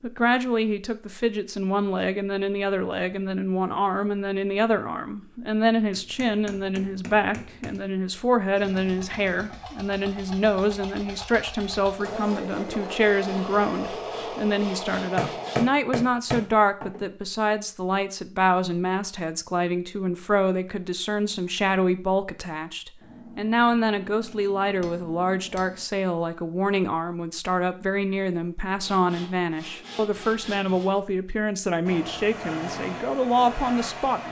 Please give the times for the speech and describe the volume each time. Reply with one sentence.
You can hear the speech from 0.0 to 34.2 s, at a steady volume.